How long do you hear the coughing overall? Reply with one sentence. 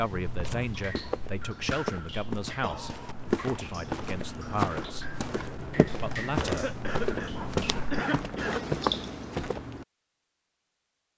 The coughing can be heard for 3 seconds in total.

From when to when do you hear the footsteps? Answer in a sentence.
You can hear the footsteps from 0.2 to 9.8 s.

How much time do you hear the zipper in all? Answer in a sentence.
You can hear the zipper for 2 seconds altogether.